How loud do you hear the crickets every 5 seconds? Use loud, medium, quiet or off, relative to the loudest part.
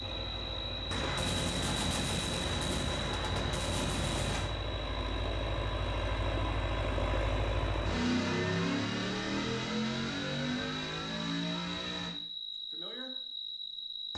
loud, medium, loud.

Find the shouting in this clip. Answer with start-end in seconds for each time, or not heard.
not heard.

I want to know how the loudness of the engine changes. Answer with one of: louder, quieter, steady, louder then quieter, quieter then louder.
louder.